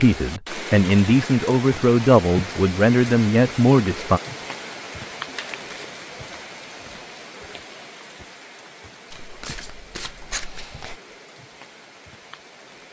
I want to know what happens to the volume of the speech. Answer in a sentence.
The loudness of the speech stays about the same.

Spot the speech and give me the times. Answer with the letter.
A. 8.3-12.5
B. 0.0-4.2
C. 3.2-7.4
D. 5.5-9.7
B.